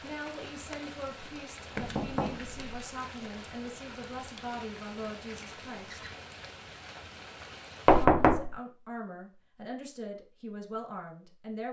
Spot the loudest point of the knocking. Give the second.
8 s.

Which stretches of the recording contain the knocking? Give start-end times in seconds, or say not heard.
1.8-2.6, 7.8-8.5.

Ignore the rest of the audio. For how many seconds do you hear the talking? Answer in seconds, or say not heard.
10 s.